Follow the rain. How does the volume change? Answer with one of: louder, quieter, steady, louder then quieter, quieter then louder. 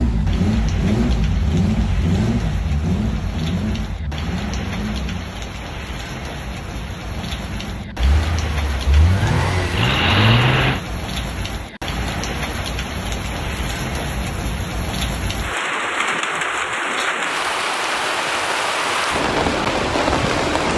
louder.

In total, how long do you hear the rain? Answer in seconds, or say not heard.
21 s.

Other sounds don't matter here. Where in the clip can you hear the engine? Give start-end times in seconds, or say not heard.
0.0-5.3, 7.1-10.8.